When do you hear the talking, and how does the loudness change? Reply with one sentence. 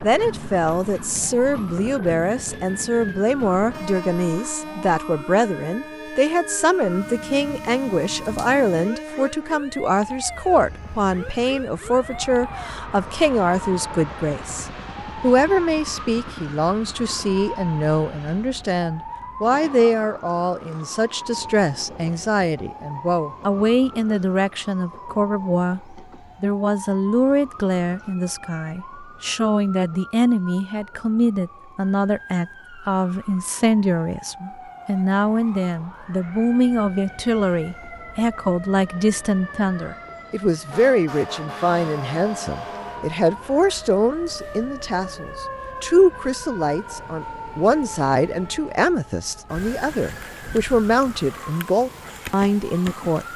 You can hear the talking from 0.0 to 53.3 s, at a steady volume.